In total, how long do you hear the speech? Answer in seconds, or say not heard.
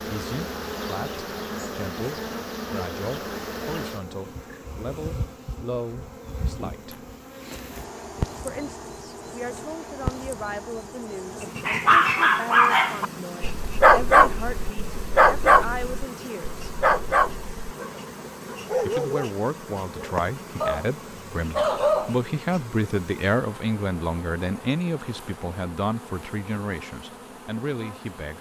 25 s.